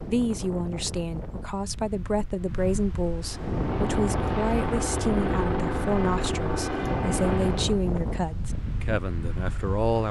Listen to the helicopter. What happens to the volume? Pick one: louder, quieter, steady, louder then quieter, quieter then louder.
steady.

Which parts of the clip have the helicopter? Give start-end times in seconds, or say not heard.
3.2-7.8.